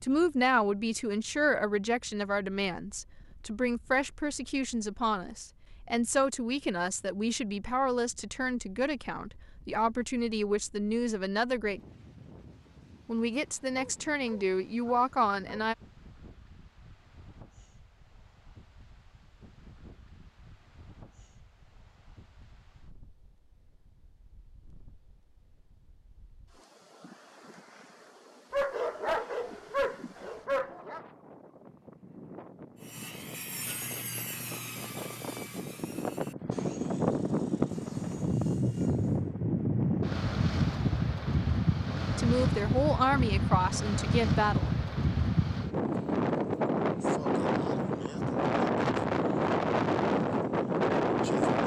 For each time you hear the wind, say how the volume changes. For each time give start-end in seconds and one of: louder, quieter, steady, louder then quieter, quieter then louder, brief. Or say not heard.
0.0-51.6 louder.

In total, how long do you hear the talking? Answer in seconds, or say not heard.
17 s.